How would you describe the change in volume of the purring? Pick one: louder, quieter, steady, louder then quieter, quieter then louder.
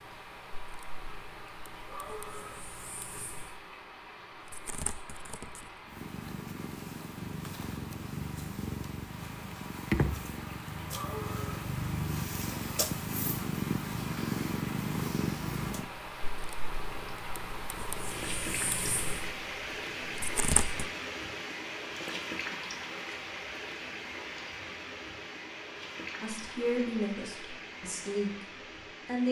louder then quieter.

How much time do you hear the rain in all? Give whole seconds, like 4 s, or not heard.
29 s.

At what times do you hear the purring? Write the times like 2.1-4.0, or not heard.
0.0-20.9.